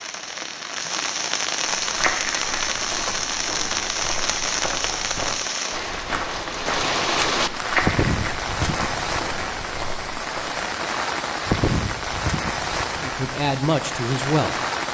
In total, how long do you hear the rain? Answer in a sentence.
You can hear the rain for 15 seconds altogether.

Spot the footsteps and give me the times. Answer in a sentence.
You can hear the footsteps from 1.8 to 10.6 s.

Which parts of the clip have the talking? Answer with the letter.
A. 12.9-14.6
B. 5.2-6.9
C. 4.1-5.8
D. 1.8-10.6
A.